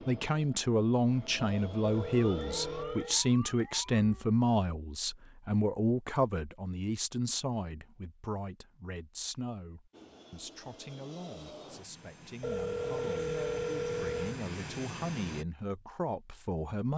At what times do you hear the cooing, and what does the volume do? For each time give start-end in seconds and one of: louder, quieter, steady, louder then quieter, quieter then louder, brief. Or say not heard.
not heard.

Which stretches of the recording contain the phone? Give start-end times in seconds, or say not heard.
1.8-3.2, 12.4-14.4.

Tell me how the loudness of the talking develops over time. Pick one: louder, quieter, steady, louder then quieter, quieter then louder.
quieter then louder.